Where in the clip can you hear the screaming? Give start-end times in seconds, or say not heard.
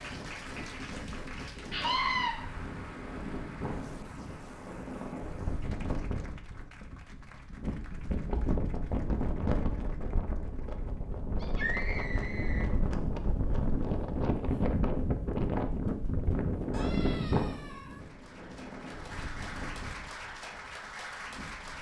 1.7-2.3, 11.4-12.7, 16.7-18.1.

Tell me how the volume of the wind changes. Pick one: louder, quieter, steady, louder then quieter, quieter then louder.
louder then quieter.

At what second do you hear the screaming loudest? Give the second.
2 s.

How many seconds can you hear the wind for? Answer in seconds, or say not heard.
22 s.